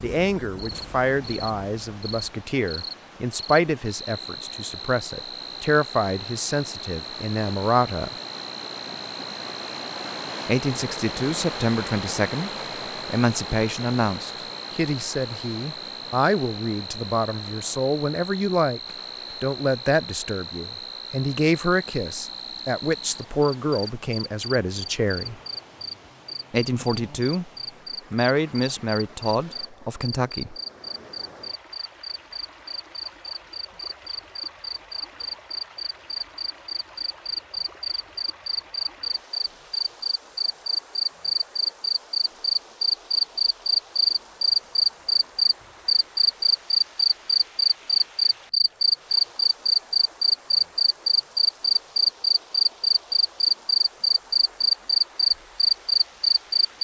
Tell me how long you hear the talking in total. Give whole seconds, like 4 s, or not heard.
26 s.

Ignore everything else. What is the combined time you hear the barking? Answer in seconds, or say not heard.
not heard.